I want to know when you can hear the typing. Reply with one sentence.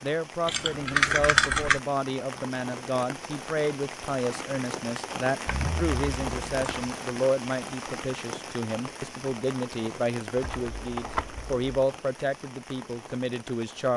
You can hear the typing from 0.5 to 1.8 s, from 5.5 to 7.0 s and from 10.3 to 11.7 s.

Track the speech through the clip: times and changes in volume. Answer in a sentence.
You can hear the speech from 0.0 to 13.9 s, at a steady volume.